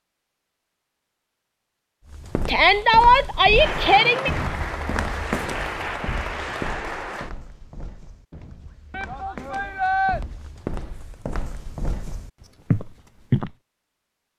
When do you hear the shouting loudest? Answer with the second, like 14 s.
3 s.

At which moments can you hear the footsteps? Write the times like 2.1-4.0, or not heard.
2.0-13.6.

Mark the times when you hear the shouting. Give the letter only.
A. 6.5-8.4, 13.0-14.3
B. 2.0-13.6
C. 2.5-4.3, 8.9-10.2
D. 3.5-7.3
C.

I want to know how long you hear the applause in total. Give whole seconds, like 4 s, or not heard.
4 s.